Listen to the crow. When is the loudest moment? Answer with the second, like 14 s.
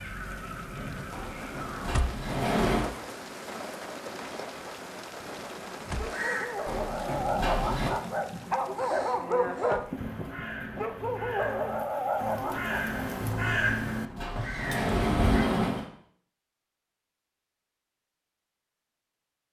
14 s.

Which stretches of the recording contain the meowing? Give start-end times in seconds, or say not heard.
not heard.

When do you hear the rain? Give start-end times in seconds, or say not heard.
0.0-13.3.